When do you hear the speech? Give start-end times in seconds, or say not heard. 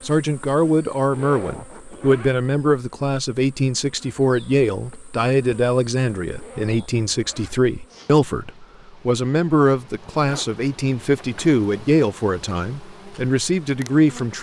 0.0-14.3.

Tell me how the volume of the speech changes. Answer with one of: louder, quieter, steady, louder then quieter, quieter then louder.
steady.